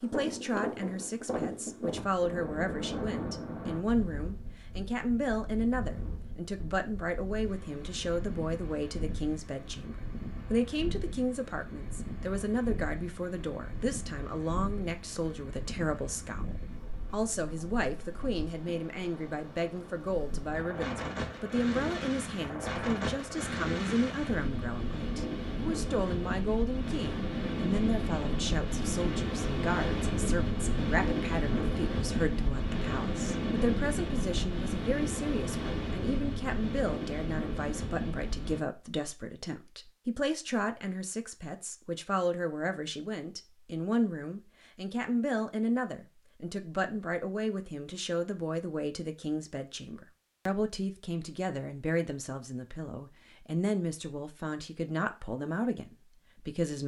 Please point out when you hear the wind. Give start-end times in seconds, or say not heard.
0.0-38.6.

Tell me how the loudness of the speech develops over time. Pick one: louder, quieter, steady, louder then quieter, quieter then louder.
steady.